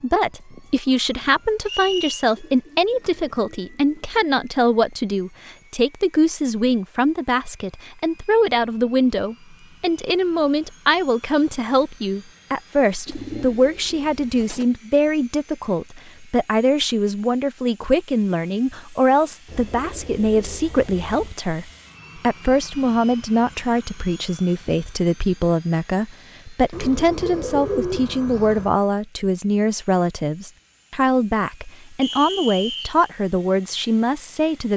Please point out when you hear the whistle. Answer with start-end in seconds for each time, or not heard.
1.6-2.2, 32.0-33.0.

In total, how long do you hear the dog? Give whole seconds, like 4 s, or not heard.
not heard.